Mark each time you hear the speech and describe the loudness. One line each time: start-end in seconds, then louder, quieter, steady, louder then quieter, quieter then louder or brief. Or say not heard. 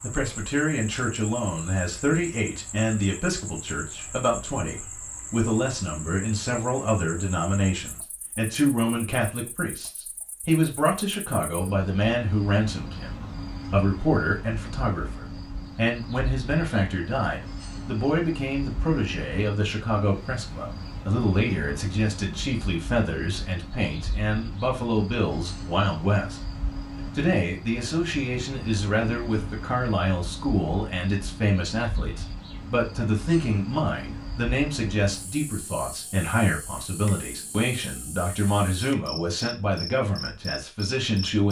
0.0-41.4 steady.